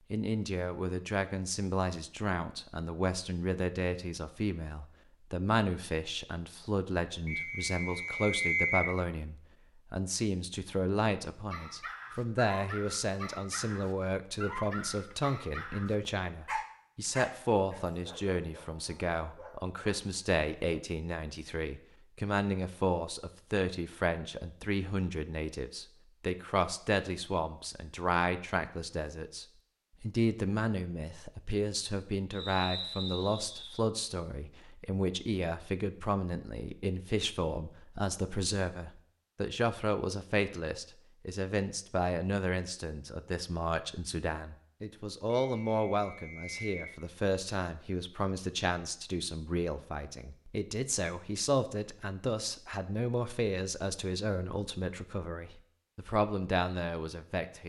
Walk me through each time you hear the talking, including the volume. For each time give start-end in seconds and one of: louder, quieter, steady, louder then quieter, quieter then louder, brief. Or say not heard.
0.1-57.6 steady.